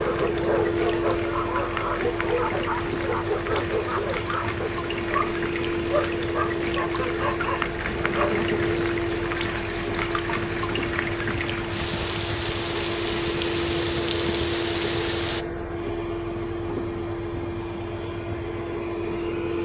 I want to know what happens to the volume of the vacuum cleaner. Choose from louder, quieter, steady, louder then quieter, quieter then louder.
steady.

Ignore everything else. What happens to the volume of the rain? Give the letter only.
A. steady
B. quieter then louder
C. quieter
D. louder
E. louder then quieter
D.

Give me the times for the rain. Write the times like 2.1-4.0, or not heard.
0.0-15.4.